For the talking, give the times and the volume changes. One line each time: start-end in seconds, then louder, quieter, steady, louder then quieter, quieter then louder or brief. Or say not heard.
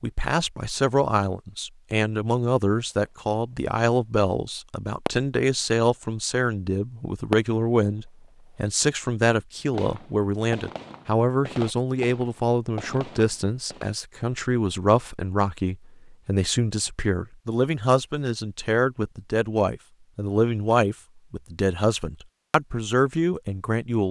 0.0-24.0 steady.